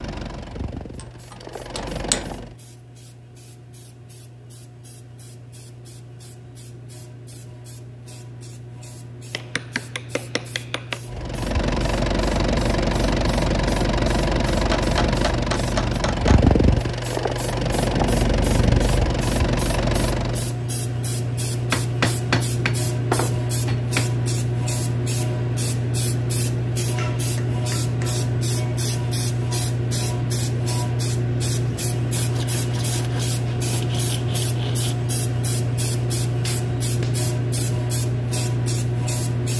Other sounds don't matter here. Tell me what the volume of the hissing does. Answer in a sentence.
The loudness of the hissing goes up.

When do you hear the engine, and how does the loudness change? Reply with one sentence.
You can hear the engine briefly from 0.0 to 2.5 s; and from 11.1 to 20.6 s, at a steady volume.